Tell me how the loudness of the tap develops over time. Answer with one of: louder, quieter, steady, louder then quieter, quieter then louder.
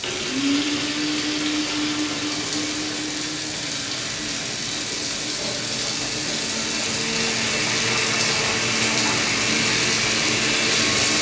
louder.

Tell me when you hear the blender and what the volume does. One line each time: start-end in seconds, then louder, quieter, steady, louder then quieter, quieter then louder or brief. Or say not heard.
0.0-11.1 quieter then louder.